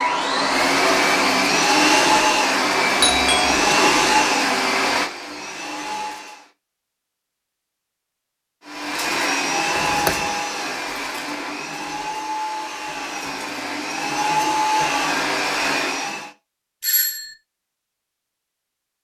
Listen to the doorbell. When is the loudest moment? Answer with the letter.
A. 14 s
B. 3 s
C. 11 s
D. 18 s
B.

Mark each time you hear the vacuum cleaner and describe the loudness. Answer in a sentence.
The vacuum cleaner can be heard from 0.0 to 6.5 s, getting quieter; and from 8.7 to 16.3 s, getting quieter then louder.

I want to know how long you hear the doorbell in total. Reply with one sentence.
The doorbell can be heard for 2 seconds in total.